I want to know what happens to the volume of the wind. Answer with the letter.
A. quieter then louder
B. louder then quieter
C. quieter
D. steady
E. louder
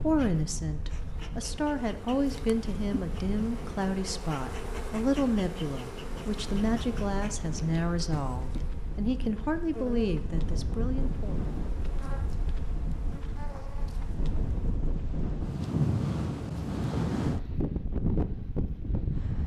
E.